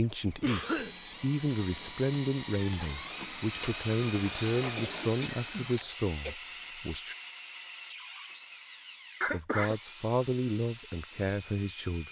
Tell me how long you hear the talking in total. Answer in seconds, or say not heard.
10 s.